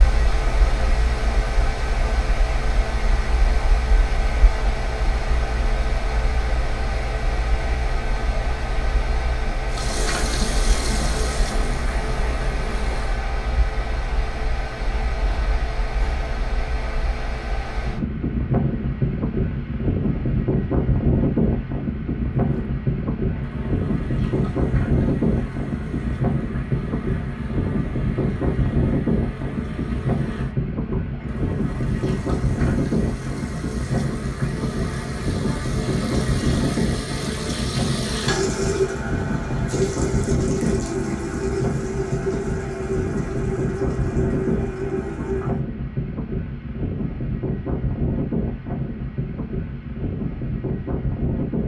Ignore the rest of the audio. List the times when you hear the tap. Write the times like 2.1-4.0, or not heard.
9.7-13.2, 22.4-45.6.